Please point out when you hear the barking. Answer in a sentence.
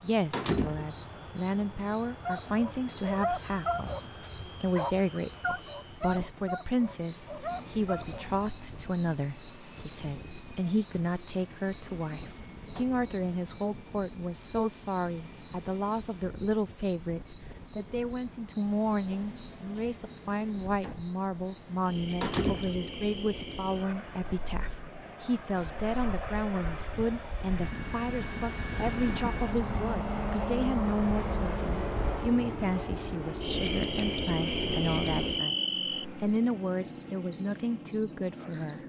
The barking can be heard from 2.2 to 8.4 s.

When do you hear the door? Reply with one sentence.
You can hear the door from 0.3 to 0.9 s and from 22.2 to 22.9 s.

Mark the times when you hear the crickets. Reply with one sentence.
The crickets can be heard from 0.0 to 38.8 s.